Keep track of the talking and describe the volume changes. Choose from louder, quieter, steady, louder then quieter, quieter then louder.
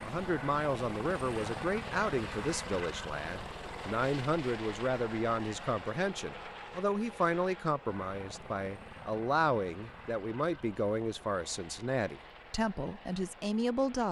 steady.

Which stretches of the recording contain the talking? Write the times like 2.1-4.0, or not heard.
0.0-14.0.